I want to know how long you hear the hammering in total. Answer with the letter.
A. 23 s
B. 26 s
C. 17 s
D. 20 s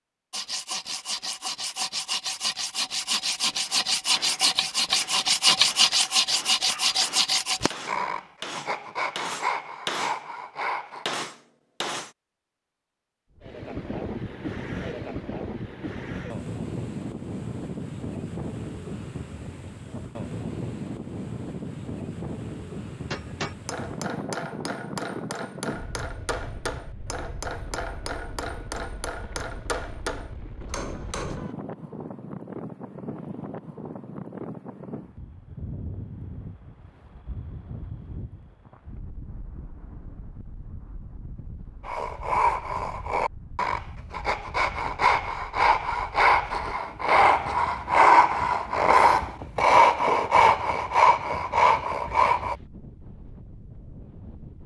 C.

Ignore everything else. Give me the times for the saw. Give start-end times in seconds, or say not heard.
0.3-11.1, 41.9-52.5.